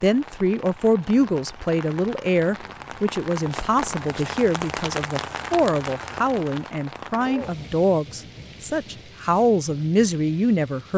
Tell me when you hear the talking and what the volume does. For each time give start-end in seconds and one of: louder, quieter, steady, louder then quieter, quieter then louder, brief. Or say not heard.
0.0-10.9 steady.